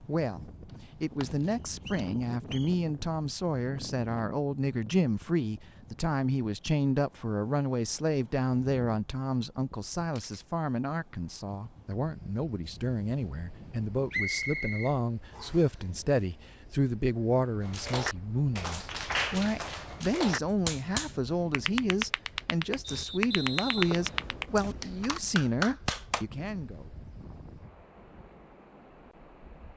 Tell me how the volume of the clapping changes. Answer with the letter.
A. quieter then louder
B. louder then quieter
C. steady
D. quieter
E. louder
C.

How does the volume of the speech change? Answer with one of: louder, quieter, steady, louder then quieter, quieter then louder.
steady.